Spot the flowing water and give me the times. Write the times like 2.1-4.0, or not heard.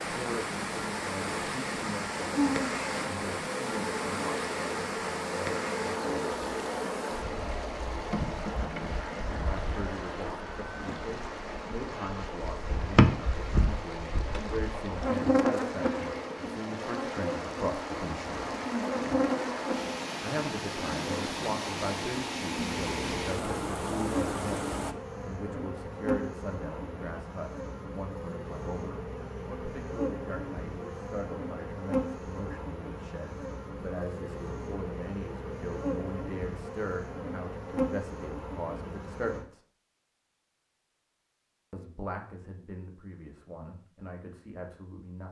0.0-24.9.